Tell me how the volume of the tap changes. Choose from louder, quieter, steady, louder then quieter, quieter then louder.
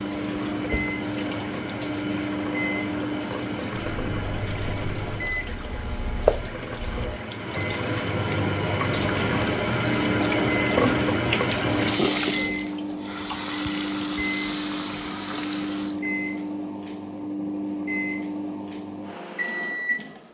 louder then quieter.